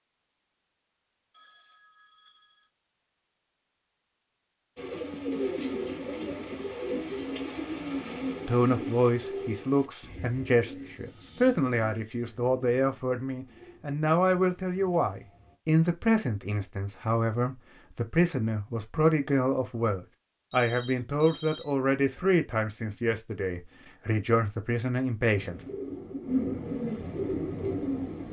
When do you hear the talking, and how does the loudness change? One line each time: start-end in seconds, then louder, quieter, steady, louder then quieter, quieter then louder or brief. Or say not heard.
8.4-25.6 steady.